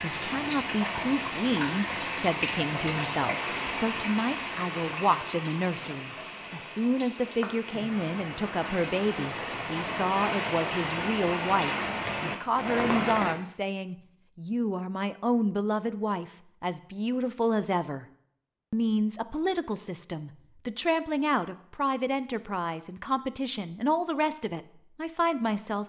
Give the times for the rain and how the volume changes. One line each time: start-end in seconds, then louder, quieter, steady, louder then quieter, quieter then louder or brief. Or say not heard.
0.0-13.3 quieter then louder.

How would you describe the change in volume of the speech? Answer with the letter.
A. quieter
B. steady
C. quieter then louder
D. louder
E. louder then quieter
B.